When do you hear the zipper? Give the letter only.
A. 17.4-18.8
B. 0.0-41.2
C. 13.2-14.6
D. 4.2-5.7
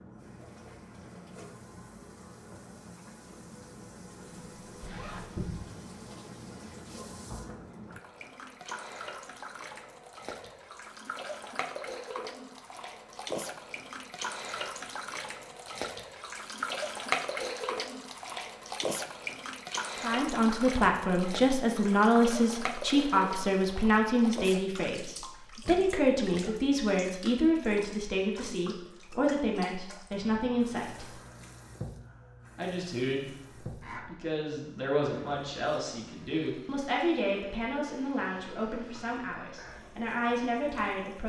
D.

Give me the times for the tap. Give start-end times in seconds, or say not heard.
0.0-41.2.